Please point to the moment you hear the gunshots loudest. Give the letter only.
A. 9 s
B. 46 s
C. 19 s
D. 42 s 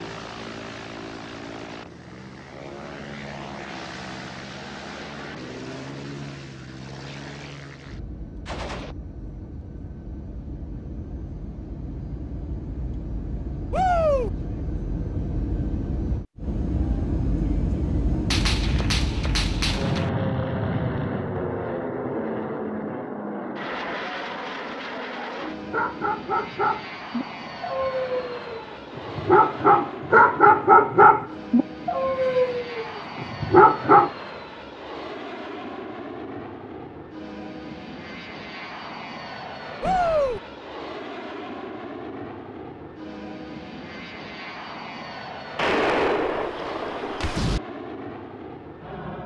B.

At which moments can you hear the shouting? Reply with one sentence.
You can hear the shouting from 13.7 to 14.3 s and from 39.8 to 40.4 s.